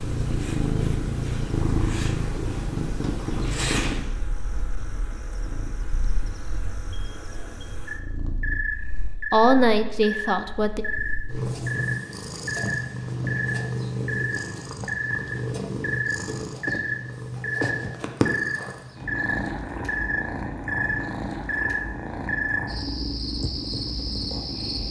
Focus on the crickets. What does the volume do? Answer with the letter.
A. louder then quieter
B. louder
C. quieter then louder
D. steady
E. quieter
B.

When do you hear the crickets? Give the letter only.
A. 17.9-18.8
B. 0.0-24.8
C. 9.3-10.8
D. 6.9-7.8
B.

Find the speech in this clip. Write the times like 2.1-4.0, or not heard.
9.3-10.8.